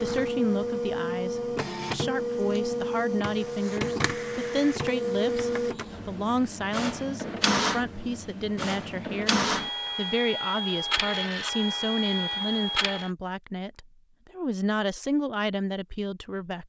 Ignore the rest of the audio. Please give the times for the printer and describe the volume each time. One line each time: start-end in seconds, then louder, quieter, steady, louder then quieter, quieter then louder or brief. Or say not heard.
0.0-13.1 steady.